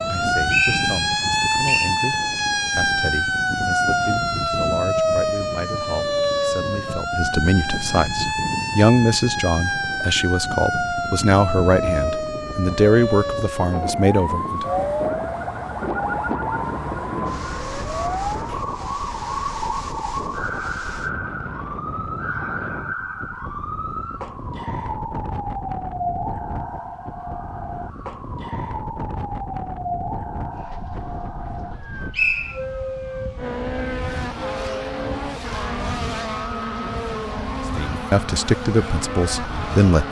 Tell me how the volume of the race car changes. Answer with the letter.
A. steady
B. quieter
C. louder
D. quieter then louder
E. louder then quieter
A.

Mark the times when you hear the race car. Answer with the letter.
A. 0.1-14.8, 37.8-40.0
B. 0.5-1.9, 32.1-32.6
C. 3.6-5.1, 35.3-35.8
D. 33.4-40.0
D.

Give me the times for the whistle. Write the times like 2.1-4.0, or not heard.
0.5-1.9, 32.1-32.6.